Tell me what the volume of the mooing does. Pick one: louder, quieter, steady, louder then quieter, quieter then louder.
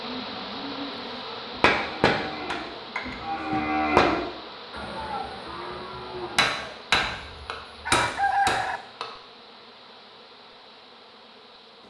louder then quieter.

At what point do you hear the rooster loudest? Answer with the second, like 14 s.
8 s.